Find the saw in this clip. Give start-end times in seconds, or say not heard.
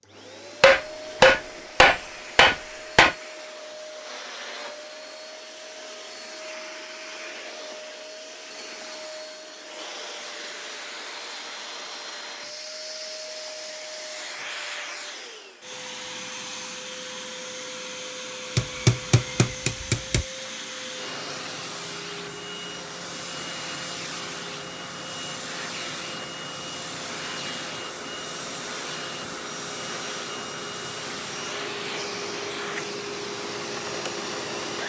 not heard.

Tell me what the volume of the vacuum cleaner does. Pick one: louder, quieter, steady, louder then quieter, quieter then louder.
louder.